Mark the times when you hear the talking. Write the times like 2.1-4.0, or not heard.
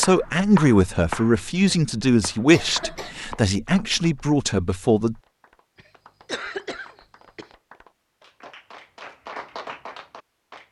0.0-5.2.